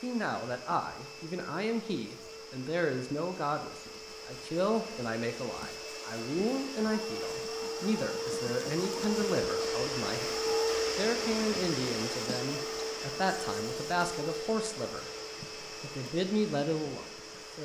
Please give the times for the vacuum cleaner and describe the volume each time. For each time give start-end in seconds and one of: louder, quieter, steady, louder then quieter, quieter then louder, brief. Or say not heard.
0.0-17.6 louder then quieter.